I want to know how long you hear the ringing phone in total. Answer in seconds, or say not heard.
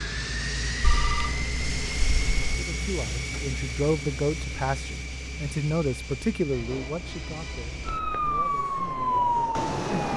4 s.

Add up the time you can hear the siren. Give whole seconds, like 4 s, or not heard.
2 s.